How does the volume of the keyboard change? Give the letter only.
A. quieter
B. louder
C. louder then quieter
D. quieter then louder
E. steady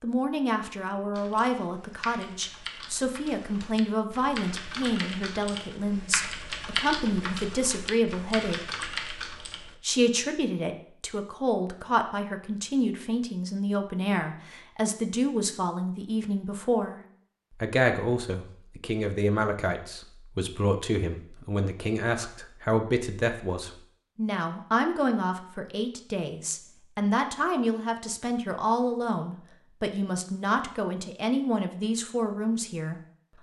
B.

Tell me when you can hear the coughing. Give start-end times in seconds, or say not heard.
not heard.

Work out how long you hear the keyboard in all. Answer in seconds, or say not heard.
9 s.